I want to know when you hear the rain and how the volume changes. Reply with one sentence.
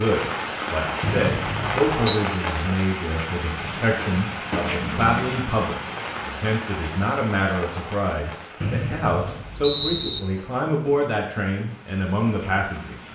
You can hear the rain from 0.0 to 13.0 s, getting quieter.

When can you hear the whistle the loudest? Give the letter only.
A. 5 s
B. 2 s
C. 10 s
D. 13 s
C.